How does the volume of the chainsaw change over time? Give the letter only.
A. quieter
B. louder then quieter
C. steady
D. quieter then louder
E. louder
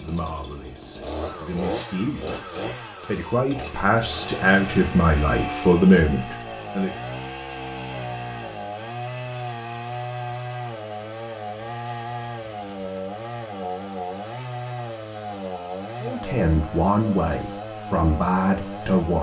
C.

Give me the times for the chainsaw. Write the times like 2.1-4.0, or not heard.
0.0-19.1.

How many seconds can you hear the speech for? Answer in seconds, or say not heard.
10 s.